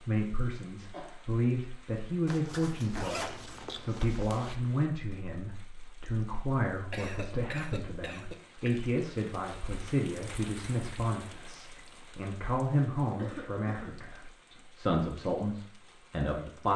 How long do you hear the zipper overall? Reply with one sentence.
The zipper can be heard for 2 seconds in total.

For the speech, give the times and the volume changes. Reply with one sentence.
You can hear the speech from 0.0 to 16.7 s, at a steady volume.